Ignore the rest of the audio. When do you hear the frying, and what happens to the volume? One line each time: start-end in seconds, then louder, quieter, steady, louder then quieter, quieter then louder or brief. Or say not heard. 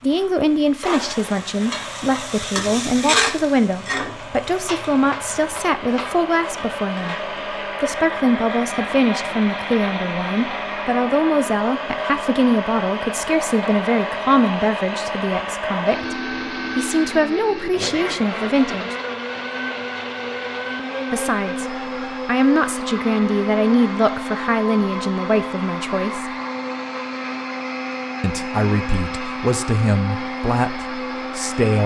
0.0-7.6 louder then quieter.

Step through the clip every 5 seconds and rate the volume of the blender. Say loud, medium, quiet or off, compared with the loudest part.
medium, loud, loud, loud, loud, loud, loud.